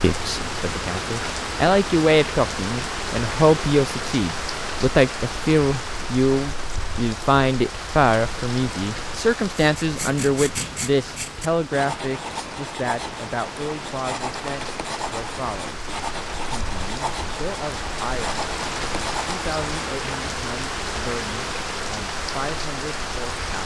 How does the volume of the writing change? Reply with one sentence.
The volume of the writing stays about the same.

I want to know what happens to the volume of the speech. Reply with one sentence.
The volume of the speech goes down.